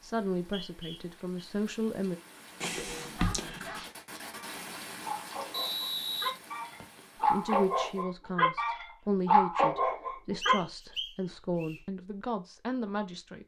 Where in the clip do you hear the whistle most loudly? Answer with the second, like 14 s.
6 s.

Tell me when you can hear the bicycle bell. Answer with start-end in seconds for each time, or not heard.
2.6-3.7.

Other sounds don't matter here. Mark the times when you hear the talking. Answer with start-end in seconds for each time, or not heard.
0.0-2.2, 7.3-13.4.